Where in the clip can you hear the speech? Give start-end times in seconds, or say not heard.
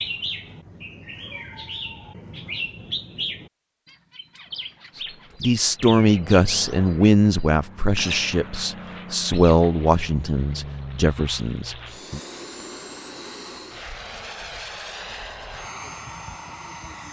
5.4-12.2.